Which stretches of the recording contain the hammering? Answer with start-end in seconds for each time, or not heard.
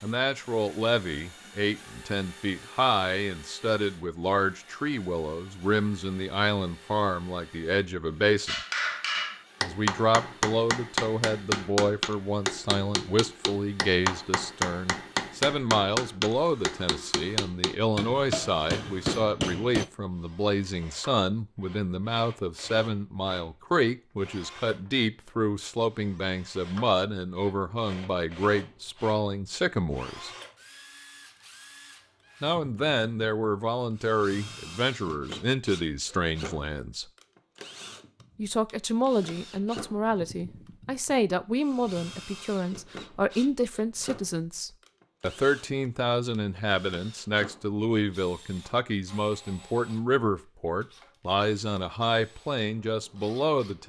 8.4-19.9.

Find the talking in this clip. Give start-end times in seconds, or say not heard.
0.0-8.6, 9.6-30.3, 32.4-37.0, 38.4-53.8.